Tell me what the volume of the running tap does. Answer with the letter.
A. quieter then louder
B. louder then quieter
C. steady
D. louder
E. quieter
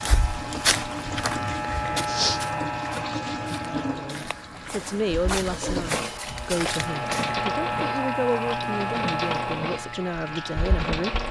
C.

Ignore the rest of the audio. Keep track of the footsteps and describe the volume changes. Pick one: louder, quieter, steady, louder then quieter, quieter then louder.
quieter then louder.